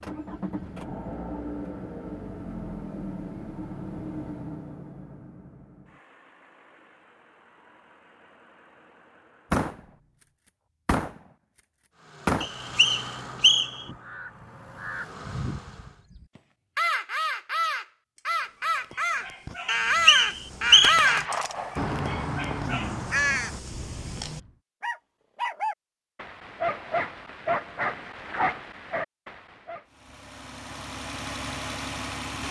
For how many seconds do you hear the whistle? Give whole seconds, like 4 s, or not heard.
3 s.